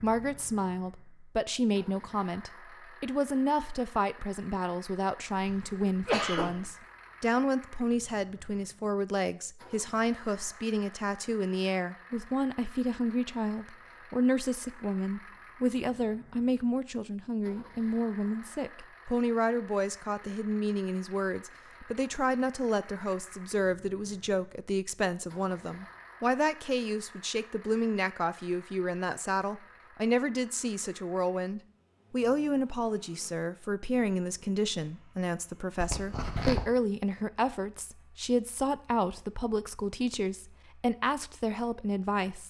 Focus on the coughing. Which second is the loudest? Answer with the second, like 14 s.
6 s.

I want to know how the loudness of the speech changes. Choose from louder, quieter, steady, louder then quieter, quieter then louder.
steady.